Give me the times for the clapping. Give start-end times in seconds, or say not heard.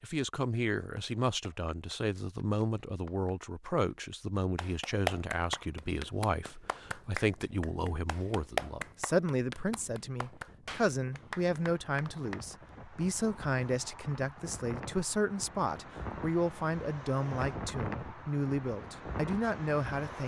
0.9-12.4.